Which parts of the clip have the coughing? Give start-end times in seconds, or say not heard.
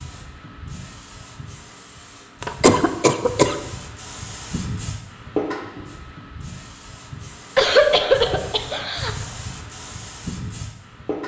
2.4-3.5, 7.5-9.1.